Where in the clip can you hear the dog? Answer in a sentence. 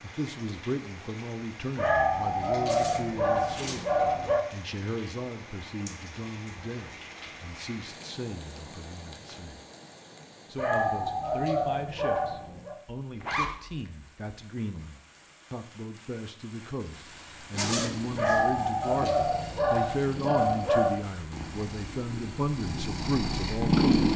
The dog can be heard from 1.8 to 4.5 s, from 10.6 to 12.8 s and from 18.1 to 21.0 s.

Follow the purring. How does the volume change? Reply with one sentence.
The volume of the purring goes up.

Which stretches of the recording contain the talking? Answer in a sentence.
You can hear the talking from 0.0 to 3.9 s, from 4.5 to 9.6 s and from 10.4 to 23.9 s.